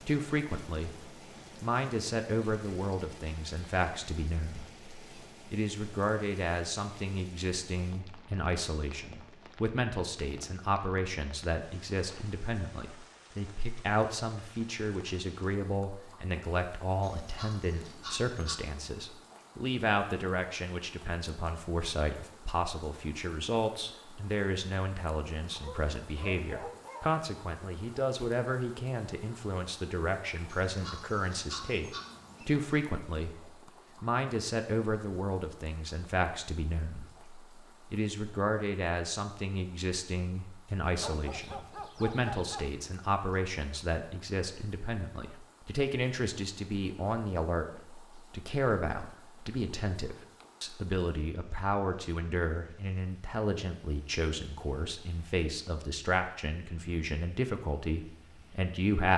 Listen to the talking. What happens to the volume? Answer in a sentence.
The volume of the talking stays about the same.